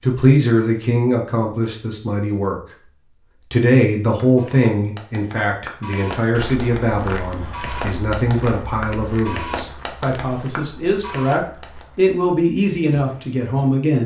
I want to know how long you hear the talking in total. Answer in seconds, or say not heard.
13 s.